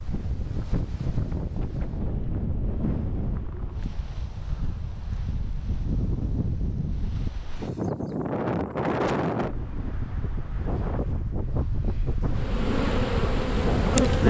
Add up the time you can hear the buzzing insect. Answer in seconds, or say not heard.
2 s.